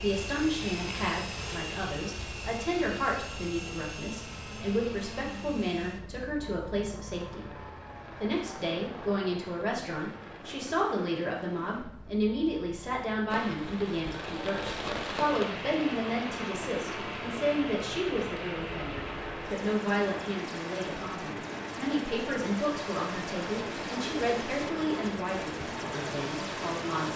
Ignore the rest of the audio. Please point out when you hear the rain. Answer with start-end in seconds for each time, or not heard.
13.2-26.9.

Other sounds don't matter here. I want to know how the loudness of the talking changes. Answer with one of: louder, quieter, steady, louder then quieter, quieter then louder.
steady.